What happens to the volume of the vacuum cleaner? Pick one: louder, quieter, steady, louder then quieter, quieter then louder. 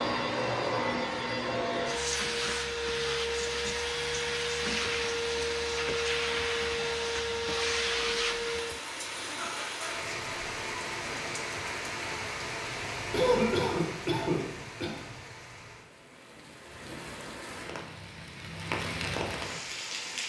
steady.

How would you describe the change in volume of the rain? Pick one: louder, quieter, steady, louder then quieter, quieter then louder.
quieter then louder.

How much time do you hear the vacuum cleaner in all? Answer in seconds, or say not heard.
9 s.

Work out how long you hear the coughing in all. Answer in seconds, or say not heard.
2 s.